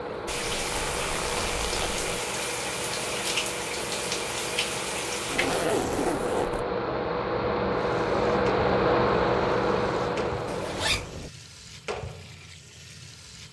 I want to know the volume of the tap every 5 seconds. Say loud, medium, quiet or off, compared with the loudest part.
loud, medium, medium.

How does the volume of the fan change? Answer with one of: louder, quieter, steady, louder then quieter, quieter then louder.
louder.